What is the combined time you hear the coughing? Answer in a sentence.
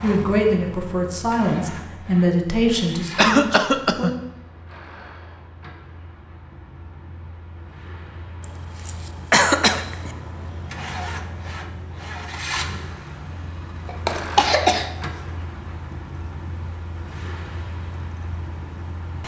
The coughing can be heard for 4 seconds in total.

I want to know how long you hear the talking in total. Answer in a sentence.
You can hear the talking for 4 seconds altogether.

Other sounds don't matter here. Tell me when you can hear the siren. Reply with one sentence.
You can't hear the siren here.